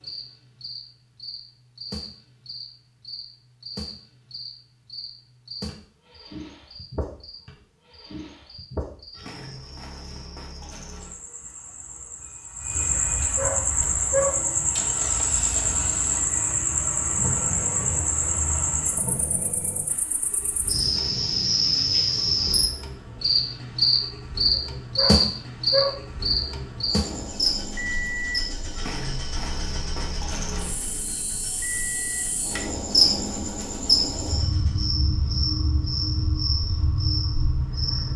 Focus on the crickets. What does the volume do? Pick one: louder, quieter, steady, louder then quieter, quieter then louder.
louder.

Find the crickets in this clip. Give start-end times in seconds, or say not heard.
0.0-38.1.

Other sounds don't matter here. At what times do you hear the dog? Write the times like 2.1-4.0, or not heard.
13.3-14.5, 24.9-25.9.